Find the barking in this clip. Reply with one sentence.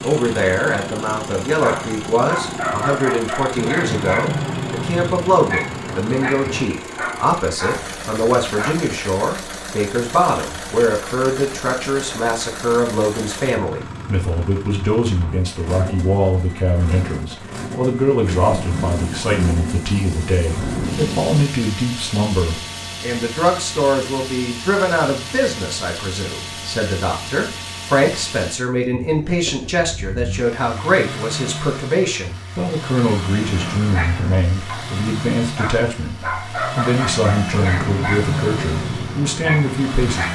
You can hear the barking from 1.5 to 8.8 s and from 33.5 to 40.3 s.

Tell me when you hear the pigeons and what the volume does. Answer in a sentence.
You can't hear the pigeons here.